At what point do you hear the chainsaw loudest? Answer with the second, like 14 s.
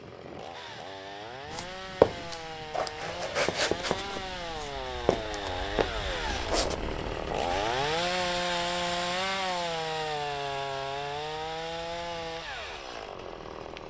8 s.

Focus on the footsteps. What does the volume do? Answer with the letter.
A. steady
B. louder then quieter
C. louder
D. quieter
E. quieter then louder
D.